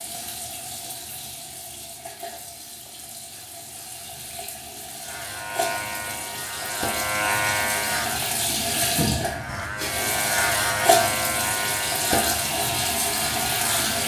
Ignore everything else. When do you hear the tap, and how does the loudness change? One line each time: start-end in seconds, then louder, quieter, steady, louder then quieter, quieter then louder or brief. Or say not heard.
0.0-14.0 louder.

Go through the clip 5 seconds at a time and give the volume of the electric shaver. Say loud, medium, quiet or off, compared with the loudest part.
off, loud, loud.